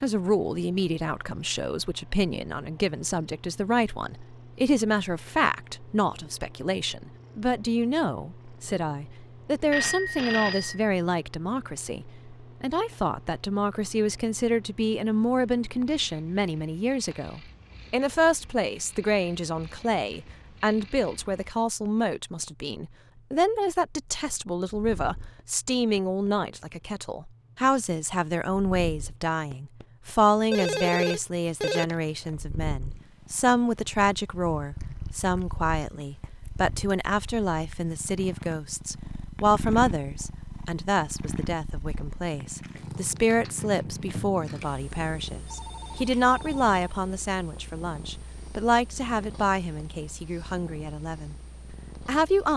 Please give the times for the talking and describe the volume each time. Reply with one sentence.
The talking can be heard from 0.0 to 51.4 s, at a steady volume; and briefly from 52.0 to 52.5 s.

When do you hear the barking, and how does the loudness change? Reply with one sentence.
You can't hear the barking here.